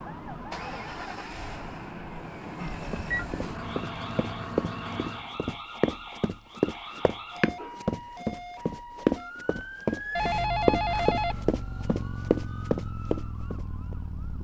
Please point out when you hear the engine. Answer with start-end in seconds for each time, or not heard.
0.0-5.3.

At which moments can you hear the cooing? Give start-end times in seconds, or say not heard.
not heard.